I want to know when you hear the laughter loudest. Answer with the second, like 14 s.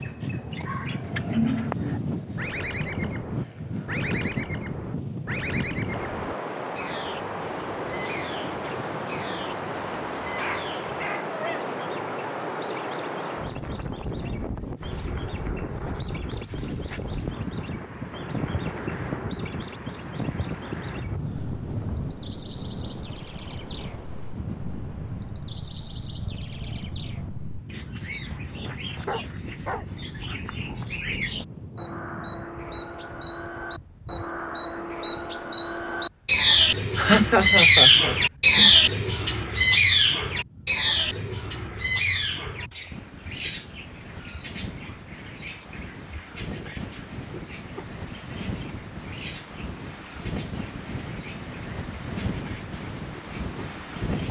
37 s.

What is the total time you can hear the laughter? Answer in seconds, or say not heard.
2 s.